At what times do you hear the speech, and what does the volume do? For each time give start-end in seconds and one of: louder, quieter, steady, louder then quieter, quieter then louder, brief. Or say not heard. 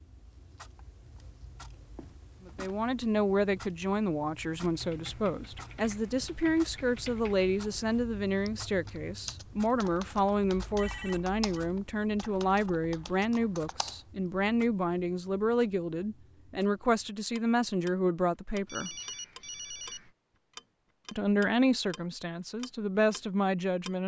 2.5-18.9 steady
21.1-24.0 brief.